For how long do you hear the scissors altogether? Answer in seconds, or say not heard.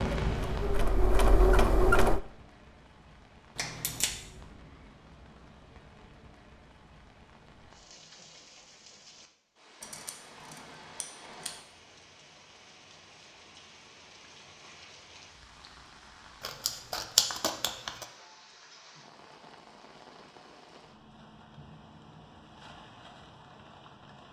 4 s.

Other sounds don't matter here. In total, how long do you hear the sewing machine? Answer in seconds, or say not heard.
2 s.